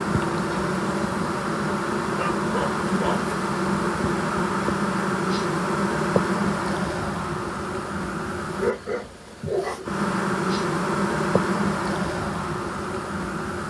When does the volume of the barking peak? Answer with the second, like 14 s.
9 s.